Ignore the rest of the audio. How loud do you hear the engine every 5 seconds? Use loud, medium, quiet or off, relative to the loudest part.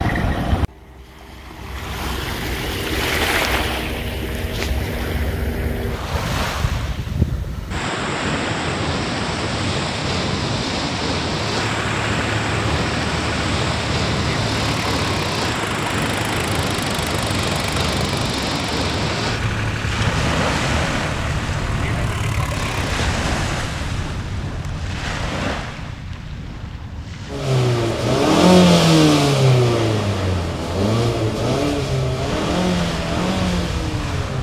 off, off, quiet, quiet, quiet, loud, medium.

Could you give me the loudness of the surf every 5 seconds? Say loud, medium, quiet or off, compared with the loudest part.
loud, loud, loud, loud, loud, medium, medium.